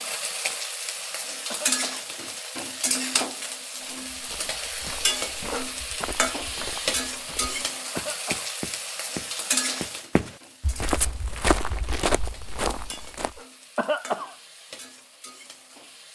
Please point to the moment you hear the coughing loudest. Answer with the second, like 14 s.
14 s.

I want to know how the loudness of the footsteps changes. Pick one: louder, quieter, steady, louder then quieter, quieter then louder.
louder.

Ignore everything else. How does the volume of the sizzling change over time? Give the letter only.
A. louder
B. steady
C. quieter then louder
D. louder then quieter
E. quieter
E.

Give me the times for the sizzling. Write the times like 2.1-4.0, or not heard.
0.0-16.0.